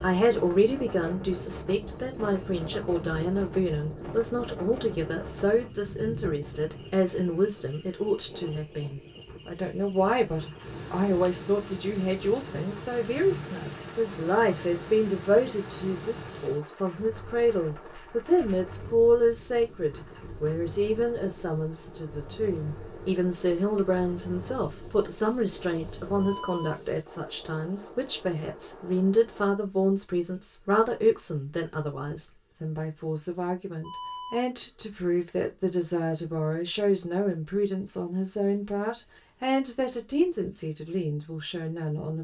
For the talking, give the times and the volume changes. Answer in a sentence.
You can hear the talking from 0.0 to 42.1 s, at a steady volume.